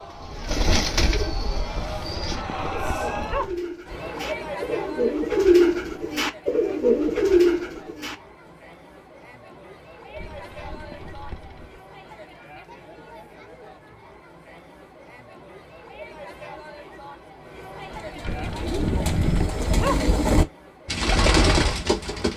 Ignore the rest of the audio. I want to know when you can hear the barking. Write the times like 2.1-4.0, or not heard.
1.7-3.6, 10.2-11.8, 18.2-20.1.